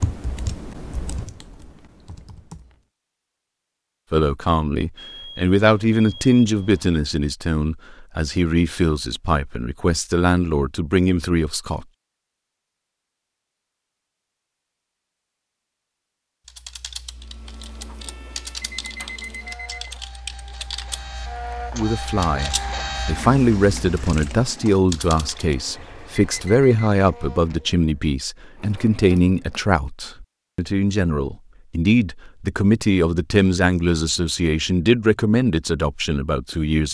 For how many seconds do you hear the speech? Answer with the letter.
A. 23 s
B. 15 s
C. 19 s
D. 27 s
A.